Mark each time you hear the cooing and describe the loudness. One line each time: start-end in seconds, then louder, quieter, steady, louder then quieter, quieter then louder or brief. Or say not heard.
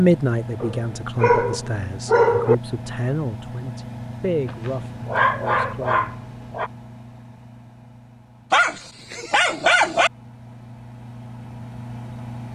not heard.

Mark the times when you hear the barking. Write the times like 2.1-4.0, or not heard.
0.6-2.5, 4.5-6.7, 8.5-10.1.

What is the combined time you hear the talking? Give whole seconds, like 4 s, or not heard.
6 s.